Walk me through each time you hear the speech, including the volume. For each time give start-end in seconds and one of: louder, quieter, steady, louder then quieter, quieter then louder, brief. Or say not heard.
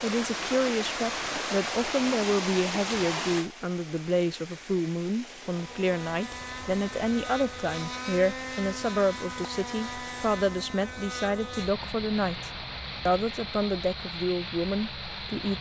0.0-15.5 steady.